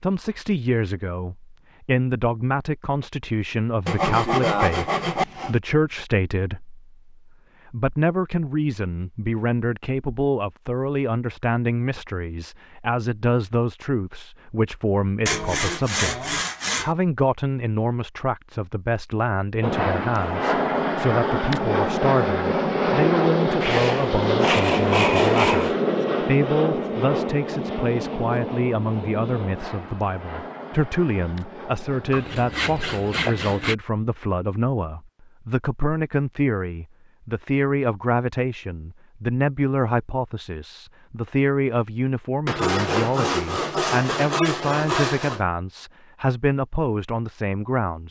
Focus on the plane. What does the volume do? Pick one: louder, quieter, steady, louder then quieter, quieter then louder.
quieter.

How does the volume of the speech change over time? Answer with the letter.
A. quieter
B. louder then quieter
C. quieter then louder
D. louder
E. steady
E.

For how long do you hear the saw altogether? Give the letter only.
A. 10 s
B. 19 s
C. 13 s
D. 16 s
A.